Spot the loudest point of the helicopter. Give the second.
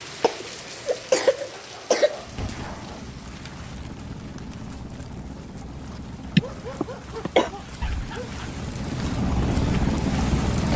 10 s.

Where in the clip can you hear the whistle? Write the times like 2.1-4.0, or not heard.
not heard.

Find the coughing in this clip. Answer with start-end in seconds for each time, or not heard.
0.2-2.2, 6.3-7.5.